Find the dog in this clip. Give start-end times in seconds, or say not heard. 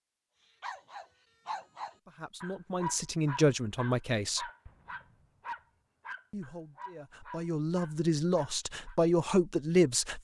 0.6-8.9.